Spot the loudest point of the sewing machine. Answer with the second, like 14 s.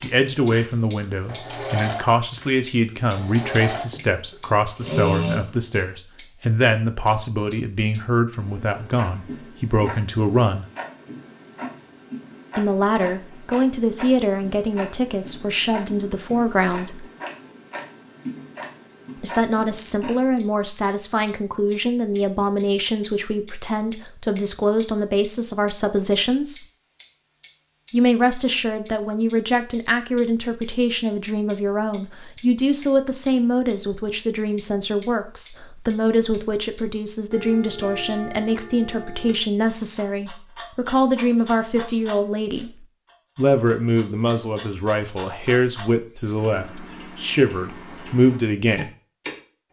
5 s.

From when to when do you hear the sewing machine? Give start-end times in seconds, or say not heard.
0.0-5.5.